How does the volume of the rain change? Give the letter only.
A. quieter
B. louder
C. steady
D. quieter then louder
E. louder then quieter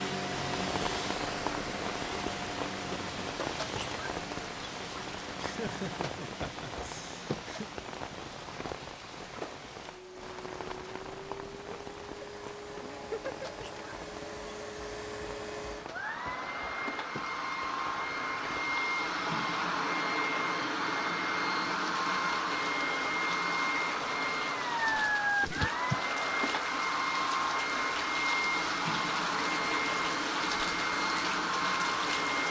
D.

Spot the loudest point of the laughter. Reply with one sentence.
The volume of the laughter peaks at 26 seconds.